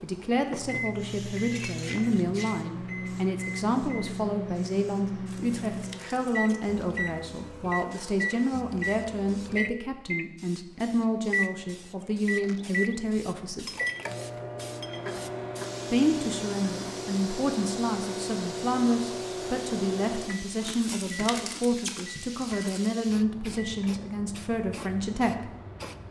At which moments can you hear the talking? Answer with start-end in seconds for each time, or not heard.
0.0-13.7, 15.9-25.5.